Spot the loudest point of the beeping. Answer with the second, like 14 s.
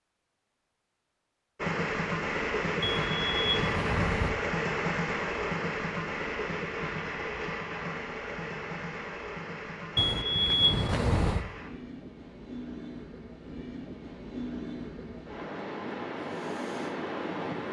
11 s.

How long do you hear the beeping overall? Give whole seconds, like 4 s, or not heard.
3 s.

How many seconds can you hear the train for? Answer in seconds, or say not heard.
16 s.